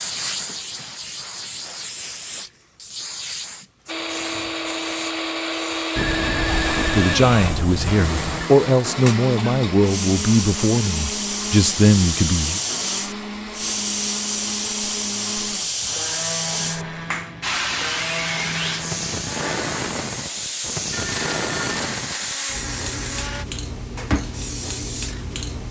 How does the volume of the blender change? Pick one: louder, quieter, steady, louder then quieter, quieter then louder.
quieter.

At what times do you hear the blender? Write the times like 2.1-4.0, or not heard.
3.9-23.4.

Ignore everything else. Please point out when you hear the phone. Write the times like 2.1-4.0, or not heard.
6.0-8.5, 20.9-21.7.